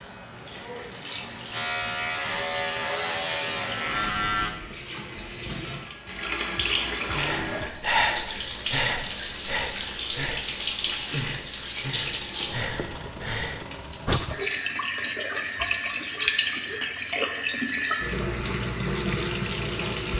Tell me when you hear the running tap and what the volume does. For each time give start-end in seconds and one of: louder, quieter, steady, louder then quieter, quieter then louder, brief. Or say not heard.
0.0-20.1 louder.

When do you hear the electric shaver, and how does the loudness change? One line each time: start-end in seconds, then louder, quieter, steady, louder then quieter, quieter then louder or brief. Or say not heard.
0.0-4.5 louder.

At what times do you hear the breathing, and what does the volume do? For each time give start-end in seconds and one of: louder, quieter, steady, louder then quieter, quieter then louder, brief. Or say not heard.
7.2-14.4 quieter.